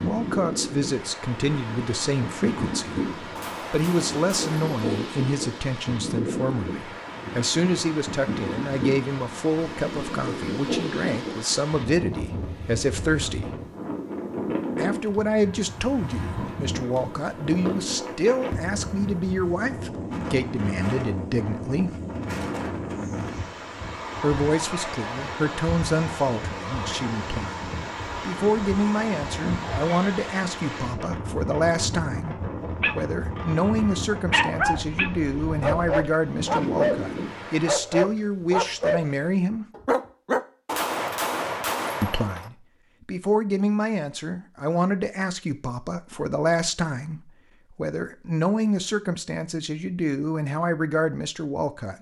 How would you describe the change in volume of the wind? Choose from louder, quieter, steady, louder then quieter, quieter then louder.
steady.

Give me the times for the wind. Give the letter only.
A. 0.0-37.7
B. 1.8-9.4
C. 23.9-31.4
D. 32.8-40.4
A.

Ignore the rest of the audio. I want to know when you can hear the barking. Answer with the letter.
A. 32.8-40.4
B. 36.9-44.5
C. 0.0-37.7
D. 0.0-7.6
A.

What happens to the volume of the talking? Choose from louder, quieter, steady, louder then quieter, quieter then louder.
steady.